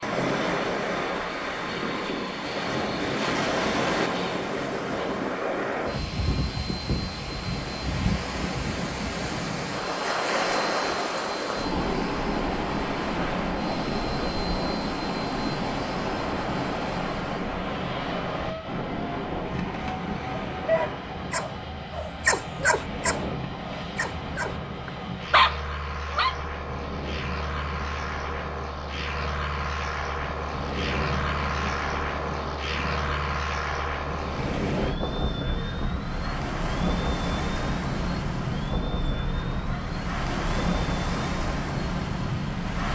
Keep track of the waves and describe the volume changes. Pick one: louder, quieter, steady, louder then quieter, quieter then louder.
quieter then louder.